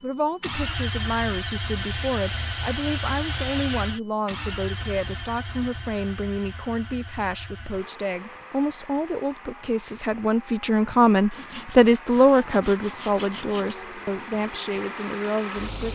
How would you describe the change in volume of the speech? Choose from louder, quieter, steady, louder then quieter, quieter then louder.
louder then quieter.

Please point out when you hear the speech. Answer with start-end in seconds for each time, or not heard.
0.0-15.8.